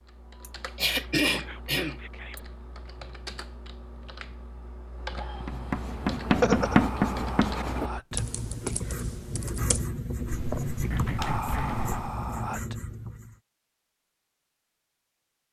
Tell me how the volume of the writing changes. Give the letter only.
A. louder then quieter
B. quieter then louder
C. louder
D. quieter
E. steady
D.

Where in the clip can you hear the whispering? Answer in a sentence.
The whispering can be heard from 1.2 to 2.5 s, from 6.6 to 8.3 s and from 11.2 to 12.8 s.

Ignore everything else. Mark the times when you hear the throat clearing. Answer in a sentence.
The throat clearing can be heard from 0.4 to 2.4 s, from 6.2 to 6.8 s and from 10.9 to 12.1 s.